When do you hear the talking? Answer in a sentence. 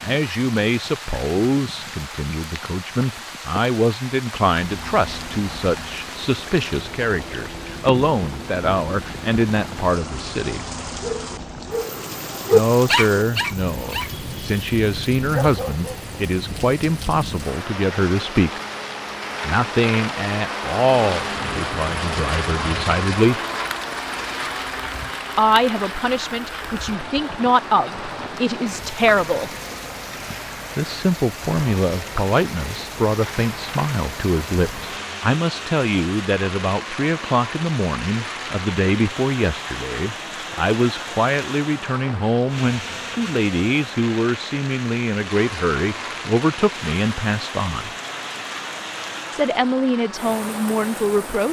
You can hear the talking from 0.0 to 10.6 s, from 12.5 to 18.6 s, from 19.4 to 23.4 s, from 25.4 to 29.5 s, from 30.8 to 47.9 s and from 49.3 to 51.4 s.